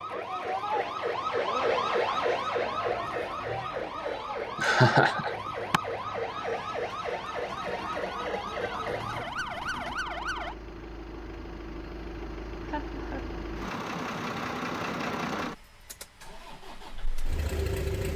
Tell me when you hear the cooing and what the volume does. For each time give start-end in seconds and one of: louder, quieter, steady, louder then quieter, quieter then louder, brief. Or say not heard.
not heard.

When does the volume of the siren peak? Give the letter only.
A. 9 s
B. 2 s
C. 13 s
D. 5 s
B.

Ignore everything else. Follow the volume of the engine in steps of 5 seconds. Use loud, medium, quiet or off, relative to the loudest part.
quiet, medium, loud, loud.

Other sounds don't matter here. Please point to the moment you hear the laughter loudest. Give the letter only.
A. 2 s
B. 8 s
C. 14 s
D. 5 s
D.